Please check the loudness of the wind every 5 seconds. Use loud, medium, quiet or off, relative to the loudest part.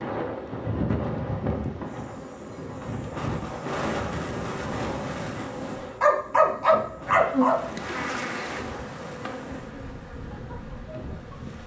loud, medium, medium.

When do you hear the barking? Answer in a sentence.
You can hear the barking from 6.0 to 7.6 s.